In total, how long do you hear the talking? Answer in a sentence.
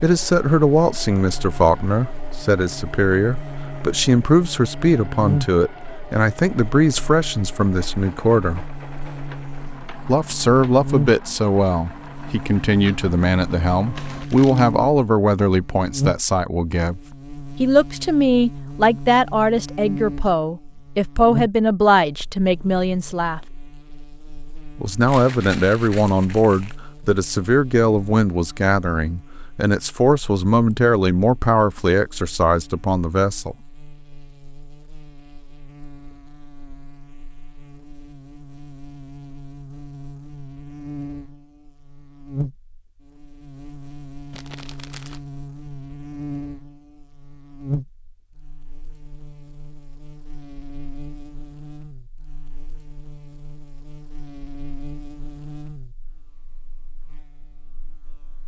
You can hear the talking for 30 seconds altogether.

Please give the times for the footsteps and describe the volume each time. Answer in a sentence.
The footsteps can't be heard in this clip.